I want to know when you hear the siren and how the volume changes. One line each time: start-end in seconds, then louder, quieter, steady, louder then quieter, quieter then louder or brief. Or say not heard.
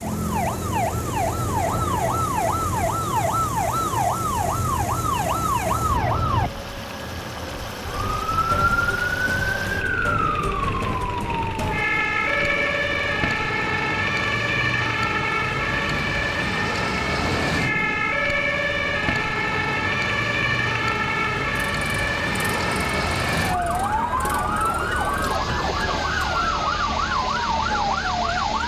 0.0-28.6 steady.